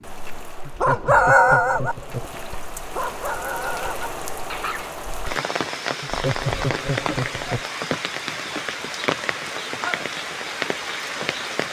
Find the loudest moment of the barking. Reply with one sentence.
The loudest moment of the barking is at 1 second.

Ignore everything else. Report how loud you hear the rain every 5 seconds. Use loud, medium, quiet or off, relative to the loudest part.
medium, loud, loud.